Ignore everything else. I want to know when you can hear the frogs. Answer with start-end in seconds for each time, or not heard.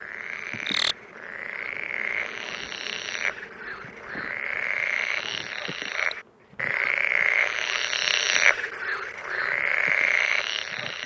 0.0-11.0.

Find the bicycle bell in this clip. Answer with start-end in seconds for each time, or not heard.
not heard.